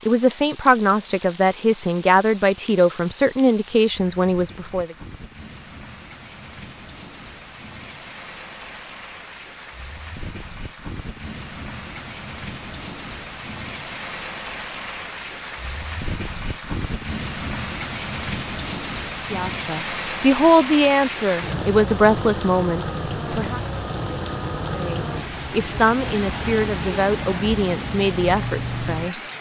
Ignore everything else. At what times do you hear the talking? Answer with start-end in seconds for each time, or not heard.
0.1-5.0, 19.3-23.6, 24.8-29.2.